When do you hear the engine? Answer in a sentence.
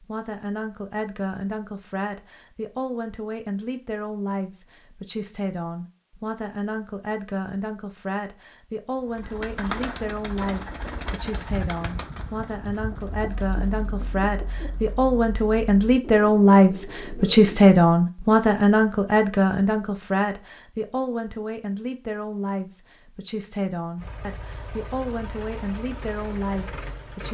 You can hear the engine from 23.9 to 27.2 s.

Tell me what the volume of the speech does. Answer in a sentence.
The loudness of the speech goes up, then down.